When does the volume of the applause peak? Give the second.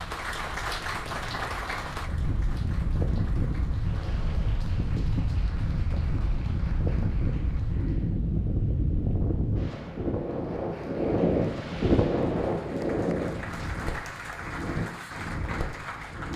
1 s.